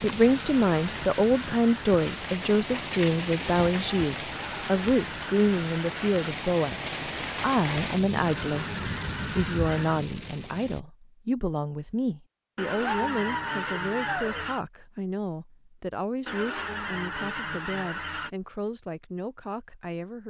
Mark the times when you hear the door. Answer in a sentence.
You can't hear the door here.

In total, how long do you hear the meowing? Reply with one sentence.
The meowing can be heard for 2 seconds in total.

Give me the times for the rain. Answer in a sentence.
The rain can be heard from 0.0 to 10.8 s.